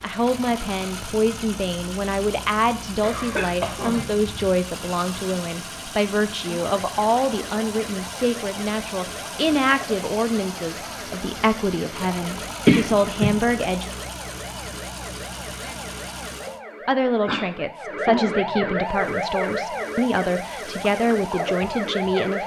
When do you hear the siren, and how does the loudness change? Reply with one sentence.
You can hear the siren from 6.4 to 22.4 s, getting louder.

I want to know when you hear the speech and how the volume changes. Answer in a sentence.
You can hear the speech from 0.0 to 13.9 s, at a steady volume; and from 16.9 to 22.4 s, at a steady volume.